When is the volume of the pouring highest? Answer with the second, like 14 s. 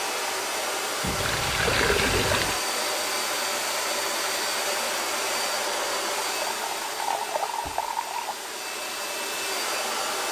2 s.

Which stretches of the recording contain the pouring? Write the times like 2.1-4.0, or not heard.
1.1-2.6, 6.3-8.5.